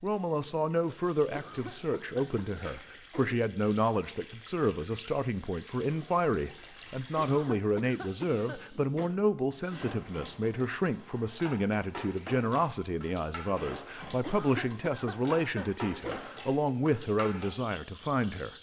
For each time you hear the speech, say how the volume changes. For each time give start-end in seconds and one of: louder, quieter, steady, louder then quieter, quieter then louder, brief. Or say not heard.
0.0-18.5 steady.